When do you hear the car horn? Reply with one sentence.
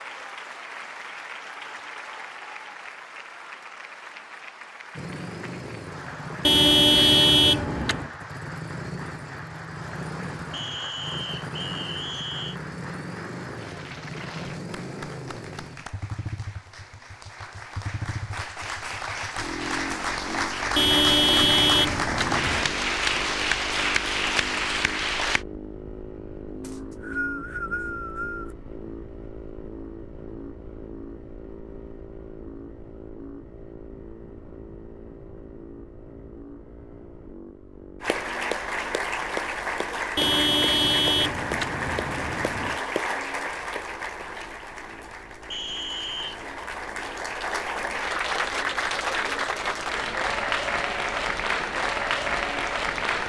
The car horn can be heard from 6.5 to 8.1 s, from 20.8 to 22.7 s and from 40.1 to 42.8 s.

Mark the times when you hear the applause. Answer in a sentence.
The applause can be heard from 0.0 to 25.4 s and from 38.0 to 53.2 s.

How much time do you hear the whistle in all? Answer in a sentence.
You can hear the whistle for 5 seconds altogether.